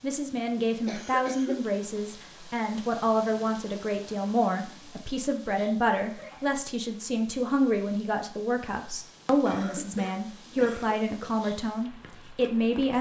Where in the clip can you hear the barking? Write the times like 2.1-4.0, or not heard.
not heard.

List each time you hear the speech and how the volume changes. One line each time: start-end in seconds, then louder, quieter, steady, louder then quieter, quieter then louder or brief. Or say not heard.
0.0-12.9 steady.